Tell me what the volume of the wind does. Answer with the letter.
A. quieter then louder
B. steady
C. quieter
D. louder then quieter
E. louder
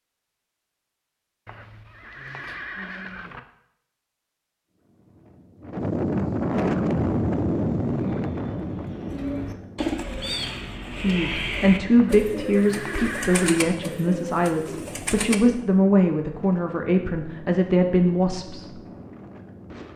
C.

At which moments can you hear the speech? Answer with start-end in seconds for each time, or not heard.
10.9-18.9.